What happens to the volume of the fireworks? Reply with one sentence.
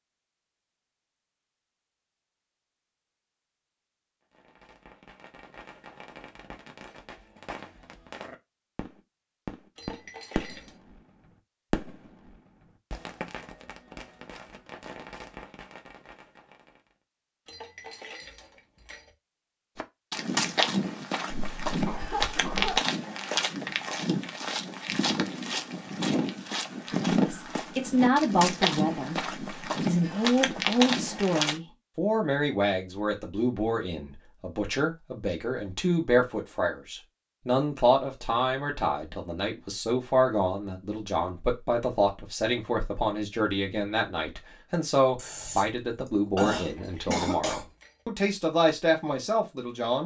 The volume of the fireworks goes up, then down.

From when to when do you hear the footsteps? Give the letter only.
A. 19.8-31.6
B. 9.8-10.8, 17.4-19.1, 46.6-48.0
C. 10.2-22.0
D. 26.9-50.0
A.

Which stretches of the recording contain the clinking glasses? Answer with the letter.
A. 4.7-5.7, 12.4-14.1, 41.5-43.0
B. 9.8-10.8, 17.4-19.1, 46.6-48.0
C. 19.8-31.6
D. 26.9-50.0
B.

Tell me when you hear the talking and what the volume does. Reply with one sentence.
The talking can be heard from 26.9 to 50.0 s, at a steady volume.